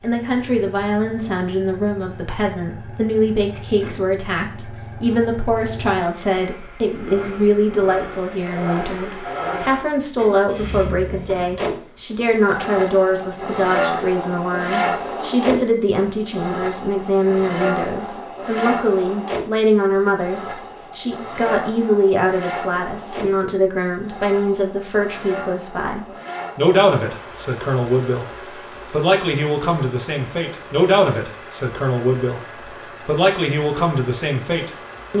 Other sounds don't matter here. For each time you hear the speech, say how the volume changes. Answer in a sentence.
You can hear the speech from 0.0 to 35.1 s, at a steady volume.